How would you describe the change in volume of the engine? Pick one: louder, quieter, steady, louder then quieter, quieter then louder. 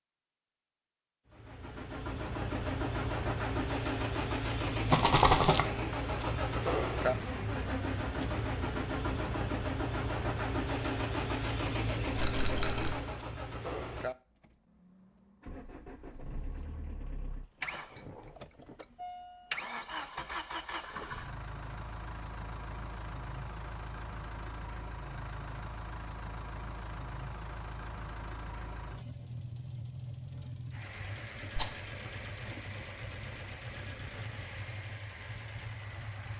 quieter.